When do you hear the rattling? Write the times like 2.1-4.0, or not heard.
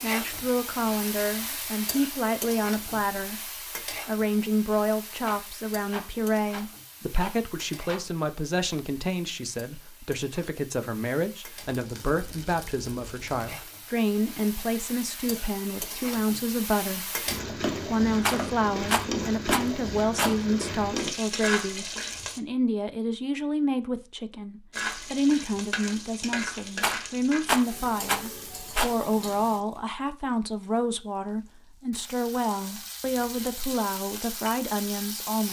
5.2-8.0, 18.2-20.4, 26.8-28.9.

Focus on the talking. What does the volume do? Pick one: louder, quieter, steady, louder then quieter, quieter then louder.
steady.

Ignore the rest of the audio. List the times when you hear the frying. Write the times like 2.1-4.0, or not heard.
0.0-22.4, 24.7-35.4.